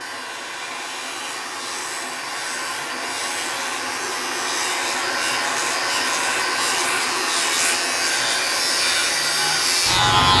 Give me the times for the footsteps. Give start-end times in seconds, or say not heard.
not heard.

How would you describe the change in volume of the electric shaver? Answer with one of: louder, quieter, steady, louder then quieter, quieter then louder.
louder.